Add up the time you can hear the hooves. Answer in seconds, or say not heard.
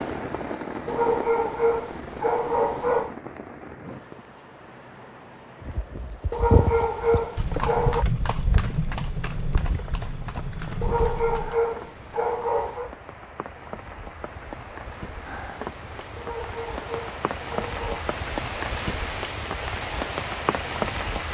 6 s.